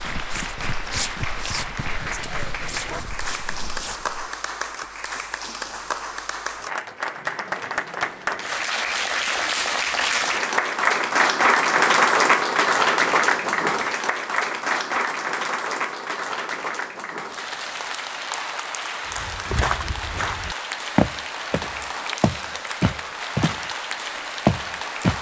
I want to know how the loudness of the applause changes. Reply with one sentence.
The loudness of the applause goes up, then down.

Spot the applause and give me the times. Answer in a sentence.
You can hear the applause from 0.0 to 25.1 s.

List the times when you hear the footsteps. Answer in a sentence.
The footsteps can be heard from 0.0 to 4.3 s, from 19.1 to 23.6 s and from 24.4 to 25.1 s.